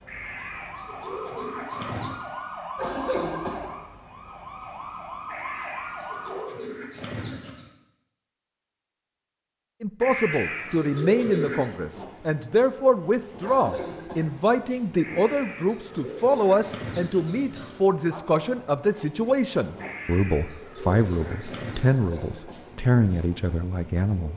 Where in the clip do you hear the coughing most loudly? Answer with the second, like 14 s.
3 s.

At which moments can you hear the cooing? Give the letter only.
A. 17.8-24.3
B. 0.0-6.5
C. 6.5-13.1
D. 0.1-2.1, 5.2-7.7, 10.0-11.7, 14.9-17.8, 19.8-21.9
D.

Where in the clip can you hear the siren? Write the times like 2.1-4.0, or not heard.
0.0-6.5.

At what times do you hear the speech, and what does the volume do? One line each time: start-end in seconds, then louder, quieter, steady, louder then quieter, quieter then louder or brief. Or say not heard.
9.8-24.3 steady.